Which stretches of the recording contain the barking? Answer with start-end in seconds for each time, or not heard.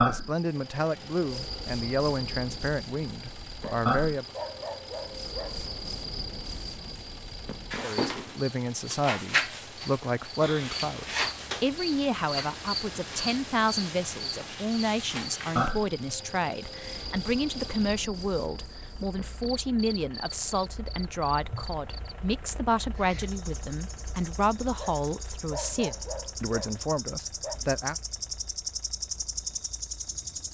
3.6-5.7, 24.8-27.6.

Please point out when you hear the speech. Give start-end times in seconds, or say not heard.
0.0-4.2, 7.8-27.9.